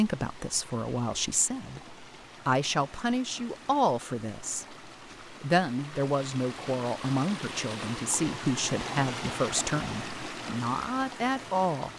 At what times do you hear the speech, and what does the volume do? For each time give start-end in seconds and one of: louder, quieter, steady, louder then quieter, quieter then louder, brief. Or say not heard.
0.0-11.9 steady.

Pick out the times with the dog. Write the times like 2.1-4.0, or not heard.
not heard.